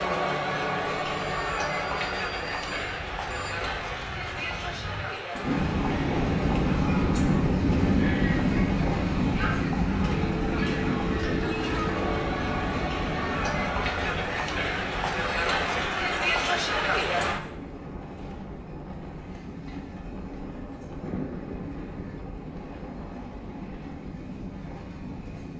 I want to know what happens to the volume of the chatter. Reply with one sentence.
The volume of the chatter goes down, then up.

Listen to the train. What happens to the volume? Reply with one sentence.
The volume of the train goes up, then down.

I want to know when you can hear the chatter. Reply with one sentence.
The chatter can be heard from 0.0 to 17.4 s.